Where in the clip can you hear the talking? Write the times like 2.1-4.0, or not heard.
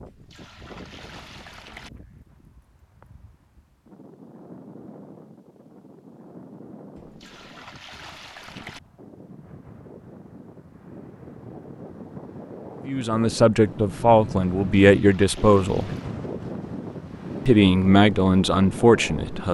12.8-15.9, 17.4-19.4.